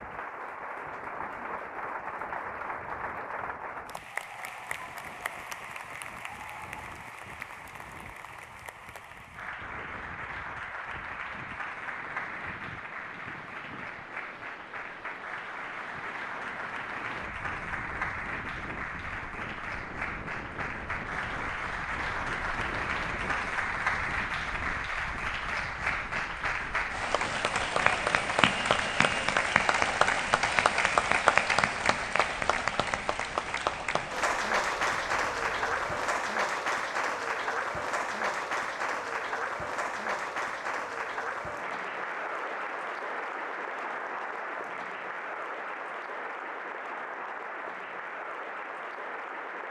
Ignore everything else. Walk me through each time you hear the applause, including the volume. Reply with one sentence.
The applause can be heard from 0.0 to 49.6 s, getting louder then quieter.